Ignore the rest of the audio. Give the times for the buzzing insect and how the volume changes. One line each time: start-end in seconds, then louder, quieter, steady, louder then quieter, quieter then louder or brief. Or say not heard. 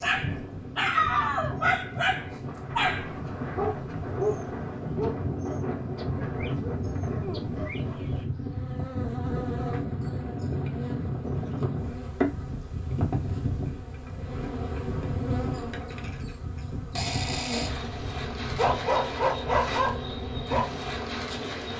0.0-21.7 louder.